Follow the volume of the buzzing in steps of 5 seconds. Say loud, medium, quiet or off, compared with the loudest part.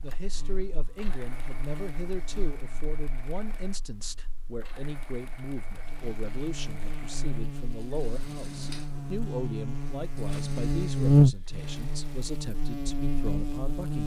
quiet, quiet, loud.